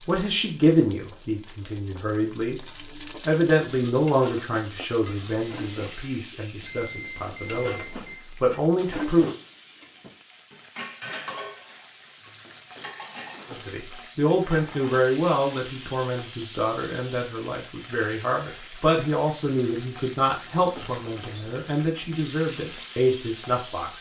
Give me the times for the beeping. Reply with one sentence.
You can hear the beeping from 6.7 to 8.2 s and from 20.4 to 22.3 s.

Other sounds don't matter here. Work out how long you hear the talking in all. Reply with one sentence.
You can hear the talking for 20 seconds altogether.